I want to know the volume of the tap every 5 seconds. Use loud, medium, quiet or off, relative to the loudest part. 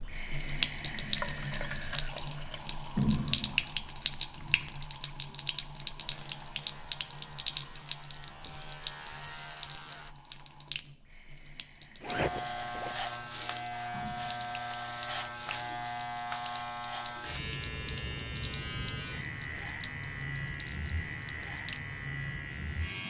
loud, medium, quiet, quiet, quiet.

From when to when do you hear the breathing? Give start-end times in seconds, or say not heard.
not heard.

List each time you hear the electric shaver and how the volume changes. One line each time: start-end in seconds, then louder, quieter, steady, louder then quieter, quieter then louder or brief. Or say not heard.
6.0-10.2 louder
12.1-23.0 steady.